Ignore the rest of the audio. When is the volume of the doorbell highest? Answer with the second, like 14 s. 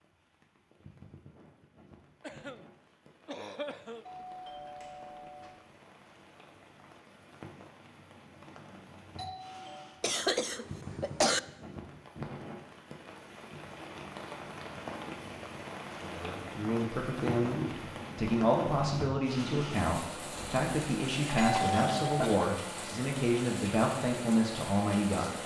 22 s.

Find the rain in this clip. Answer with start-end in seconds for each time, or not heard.
0.0-25.4.